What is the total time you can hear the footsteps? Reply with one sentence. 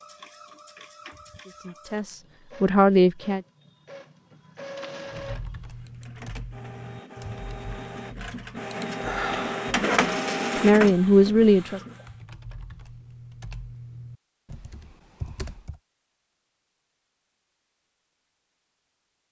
The footsteps can't be heard in this clip.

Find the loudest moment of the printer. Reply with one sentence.
The volume of the printer peaks at 10 seconds.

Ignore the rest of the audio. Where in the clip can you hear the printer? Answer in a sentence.
The printer can be heard from 0.0 to 12.1 s.